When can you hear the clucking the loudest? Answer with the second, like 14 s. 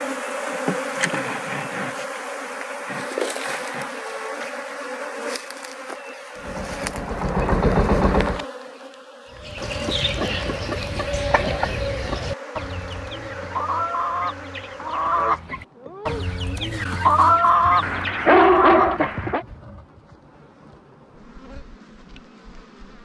17 s.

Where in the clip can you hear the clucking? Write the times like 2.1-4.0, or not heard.
9.3-19.6.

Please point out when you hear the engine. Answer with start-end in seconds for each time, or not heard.
6.3-8.4.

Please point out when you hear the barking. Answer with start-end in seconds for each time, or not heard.
17.8-19.4.